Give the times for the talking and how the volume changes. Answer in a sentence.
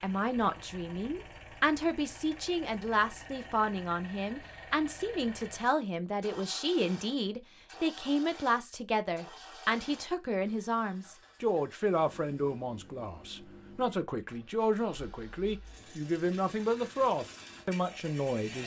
You can hear the talking from 0.0 to 18.6 s, at a steady volume.